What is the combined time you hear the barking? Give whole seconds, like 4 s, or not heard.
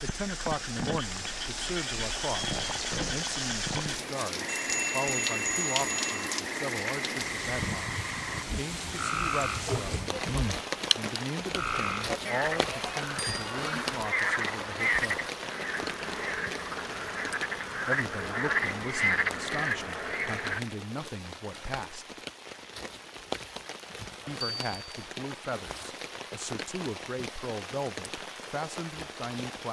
not heard.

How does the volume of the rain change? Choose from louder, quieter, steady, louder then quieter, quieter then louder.
quieter.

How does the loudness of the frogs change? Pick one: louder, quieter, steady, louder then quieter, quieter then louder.
louder.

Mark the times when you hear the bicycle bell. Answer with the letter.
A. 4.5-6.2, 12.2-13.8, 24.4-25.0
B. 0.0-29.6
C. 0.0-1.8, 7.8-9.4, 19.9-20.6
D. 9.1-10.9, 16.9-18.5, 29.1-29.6
A.